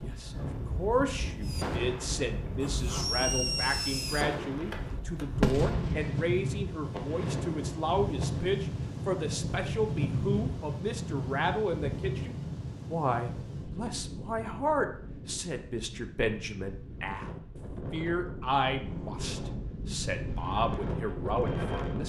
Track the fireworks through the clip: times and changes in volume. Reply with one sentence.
You can hear the fireworks from 1.4 to 8.5 s, getting louder then quieter; and briefly from 20.2 to 22.0 s.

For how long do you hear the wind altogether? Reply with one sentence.
You can hear the wind for 22 seconds altogether.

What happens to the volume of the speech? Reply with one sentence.
The volume of the speech stays about the same.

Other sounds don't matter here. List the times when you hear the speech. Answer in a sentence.
You can hear the speech from 0.0 to 22.0 s.